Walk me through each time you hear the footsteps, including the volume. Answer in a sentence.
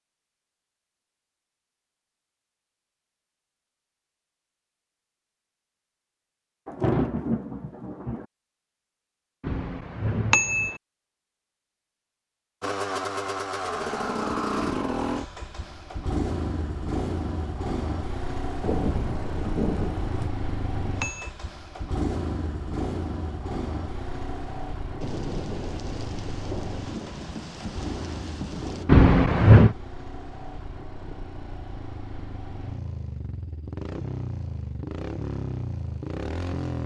You can't hear the footsteps here.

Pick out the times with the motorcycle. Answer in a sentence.
The motorcycle can be heard from 12.6 to 36.8 s.